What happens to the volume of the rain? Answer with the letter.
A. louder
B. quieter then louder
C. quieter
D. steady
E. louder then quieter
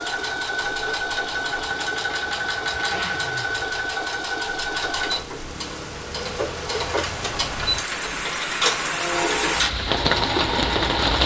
A.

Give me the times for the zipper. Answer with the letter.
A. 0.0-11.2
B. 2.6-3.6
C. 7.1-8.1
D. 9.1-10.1
B.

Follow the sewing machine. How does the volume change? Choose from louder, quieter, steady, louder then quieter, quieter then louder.
steady.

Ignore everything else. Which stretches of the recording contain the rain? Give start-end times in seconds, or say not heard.
0.0-11.2.